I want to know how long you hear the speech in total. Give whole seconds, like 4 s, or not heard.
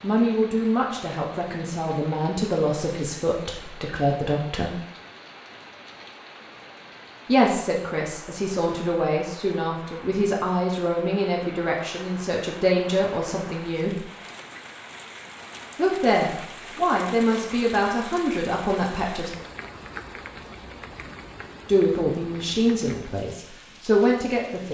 18 s.